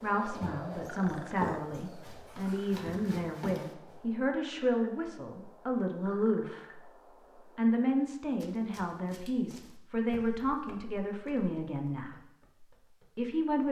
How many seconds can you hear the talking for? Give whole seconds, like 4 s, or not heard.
12 s.